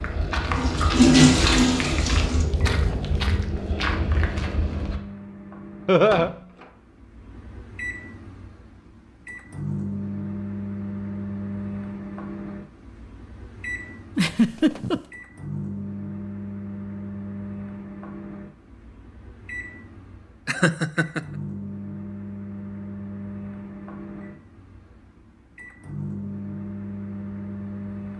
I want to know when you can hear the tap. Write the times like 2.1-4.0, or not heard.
0.0-2.5.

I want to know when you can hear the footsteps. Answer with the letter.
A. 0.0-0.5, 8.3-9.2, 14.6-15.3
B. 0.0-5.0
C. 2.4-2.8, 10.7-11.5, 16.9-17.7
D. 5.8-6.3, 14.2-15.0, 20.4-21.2
B.